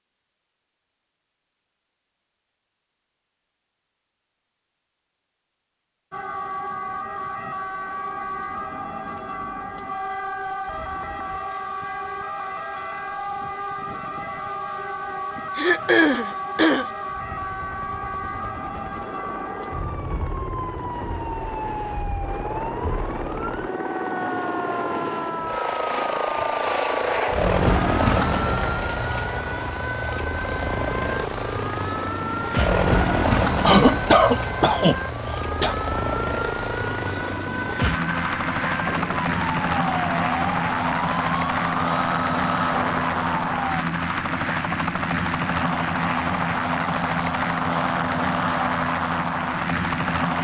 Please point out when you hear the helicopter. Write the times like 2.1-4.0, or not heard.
10.7-50.3.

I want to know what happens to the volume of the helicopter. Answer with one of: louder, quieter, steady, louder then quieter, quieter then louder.
louder.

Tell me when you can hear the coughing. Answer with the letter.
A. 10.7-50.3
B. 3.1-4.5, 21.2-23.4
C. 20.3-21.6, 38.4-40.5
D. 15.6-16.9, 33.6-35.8
D.